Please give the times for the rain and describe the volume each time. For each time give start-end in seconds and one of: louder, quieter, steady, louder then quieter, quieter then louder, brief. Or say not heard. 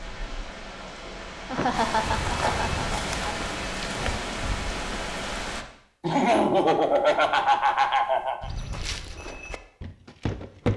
0.0-5.7 louder.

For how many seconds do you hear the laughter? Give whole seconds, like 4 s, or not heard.
4 s.